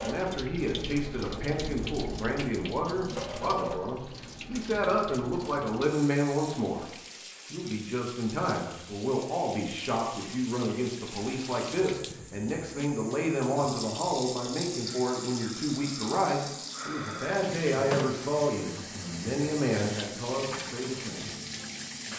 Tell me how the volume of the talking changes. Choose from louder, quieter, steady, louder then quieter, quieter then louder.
steady.